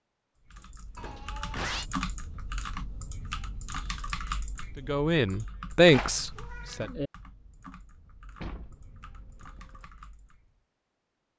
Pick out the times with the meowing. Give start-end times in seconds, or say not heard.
0.9-1.9, 5.9-6.9.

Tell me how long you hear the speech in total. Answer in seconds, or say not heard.
2 s.